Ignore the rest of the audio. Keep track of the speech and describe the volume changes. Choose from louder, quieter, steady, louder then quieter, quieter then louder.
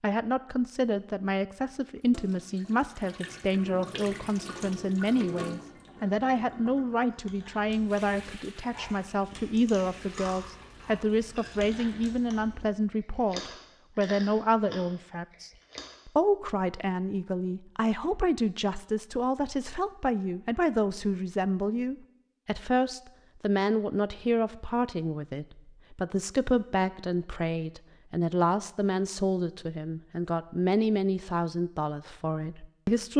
steady.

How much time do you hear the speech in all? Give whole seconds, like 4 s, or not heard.
33 s.